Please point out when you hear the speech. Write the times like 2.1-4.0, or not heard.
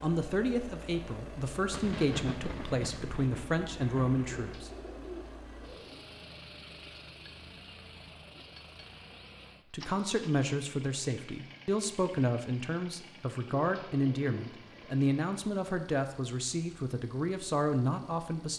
0.0-4.7, 9.7-18.5.